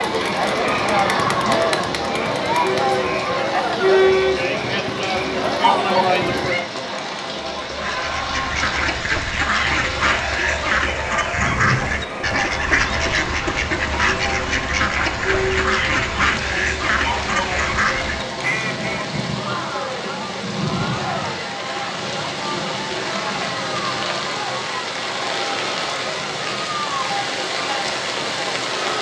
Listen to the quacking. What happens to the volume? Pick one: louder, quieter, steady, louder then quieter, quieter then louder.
steady.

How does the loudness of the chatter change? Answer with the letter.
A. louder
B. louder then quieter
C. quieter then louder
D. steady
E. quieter
E.